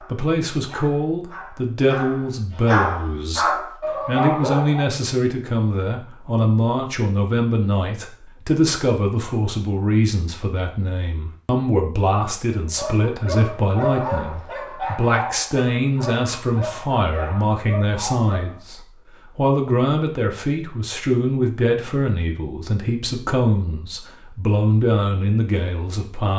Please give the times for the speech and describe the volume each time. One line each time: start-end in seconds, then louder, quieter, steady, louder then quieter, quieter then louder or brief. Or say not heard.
0.0-26.3 steady.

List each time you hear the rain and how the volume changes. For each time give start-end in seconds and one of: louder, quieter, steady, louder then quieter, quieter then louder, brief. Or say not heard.
not heard.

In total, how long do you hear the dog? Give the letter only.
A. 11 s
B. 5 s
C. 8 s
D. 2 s
A.